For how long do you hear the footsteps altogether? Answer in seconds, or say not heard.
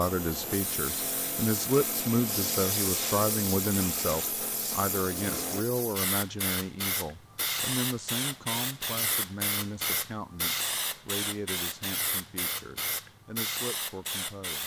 not heard.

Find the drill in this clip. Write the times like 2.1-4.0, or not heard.
0.0-5.7.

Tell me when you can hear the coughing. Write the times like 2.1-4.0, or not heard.
not heard.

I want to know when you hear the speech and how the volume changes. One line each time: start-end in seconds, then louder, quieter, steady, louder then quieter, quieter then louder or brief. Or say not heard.
0.0-14.6 quieter.